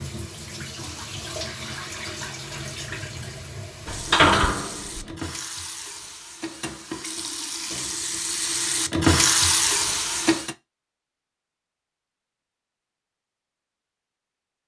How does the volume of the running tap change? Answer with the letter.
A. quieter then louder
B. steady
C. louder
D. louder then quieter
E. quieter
C.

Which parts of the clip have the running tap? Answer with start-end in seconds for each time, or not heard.
0.0-10.6.